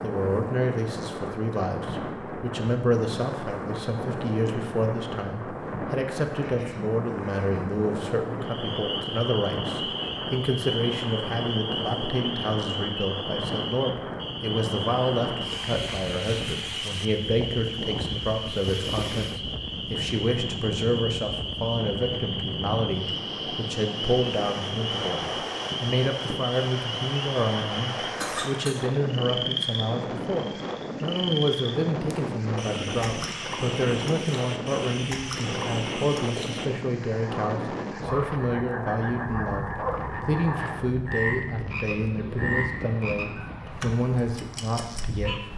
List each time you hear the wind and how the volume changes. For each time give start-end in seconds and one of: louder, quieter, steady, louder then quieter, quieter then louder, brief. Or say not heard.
0.0-45.5 steady.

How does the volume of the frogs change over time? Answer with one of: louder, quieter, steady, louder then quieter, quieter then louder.
steady.